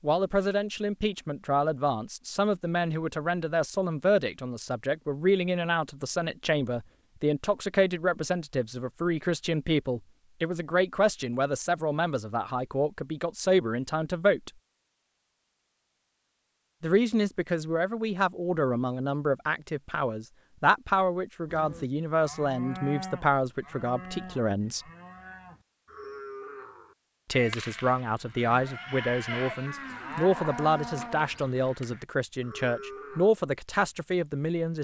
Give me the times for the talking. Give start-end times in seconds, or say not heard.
0.0-14.5, 16.8-24.9, 27.2-34.7.